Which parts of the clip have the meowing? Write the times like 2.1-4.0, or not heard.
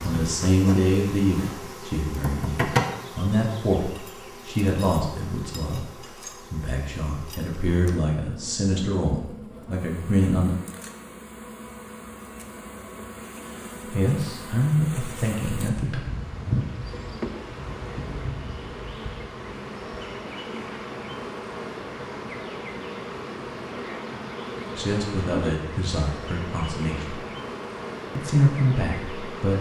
not heard.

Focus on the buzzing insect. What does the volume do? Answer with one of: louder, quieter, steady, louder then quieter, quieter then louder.
quieter then louder.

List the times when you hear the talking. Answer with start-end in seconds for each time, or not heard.
0.0-5.8, 6.5-10.6, 13.9-16.0, 24.8-27.2, 28.1-29.5.